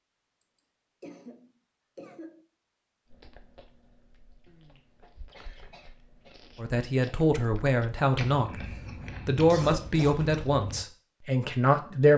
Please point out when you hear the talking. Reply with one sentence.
The talking can be heard from 6.5 to 12.1 s.